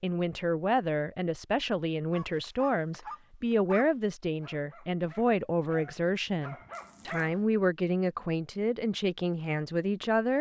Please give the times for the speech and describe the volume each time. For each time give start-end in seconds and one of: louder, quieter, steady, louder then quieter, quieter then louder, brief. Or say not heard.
0.0-10.3 steady.